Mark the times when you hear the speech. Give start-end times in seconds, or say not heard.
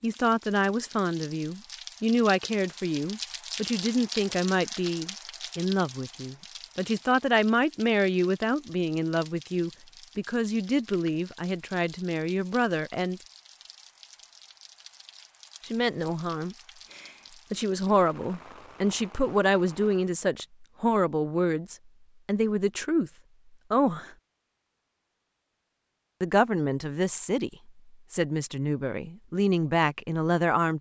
0.0-13.2, 15.7-23.1, 23.7-24.1, 26.2-30.7.